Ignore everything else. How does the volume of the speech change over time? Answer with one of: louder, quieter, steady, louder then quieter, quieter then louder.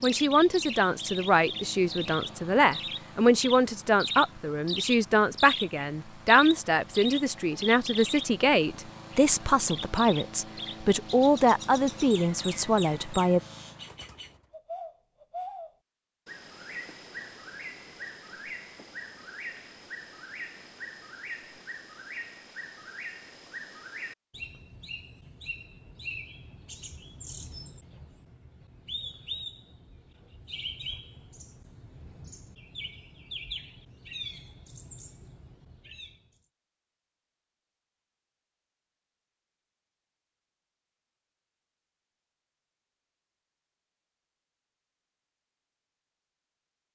steady.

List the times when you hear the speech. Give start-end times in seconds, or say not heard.
0.0-13.4.